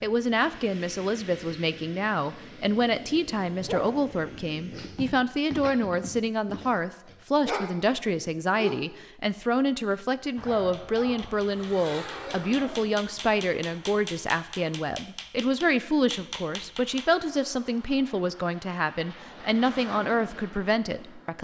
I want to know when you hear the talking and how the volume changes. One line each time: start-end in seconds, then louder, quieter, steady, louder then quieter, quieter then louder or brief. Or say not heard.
0.0-21.4 steady.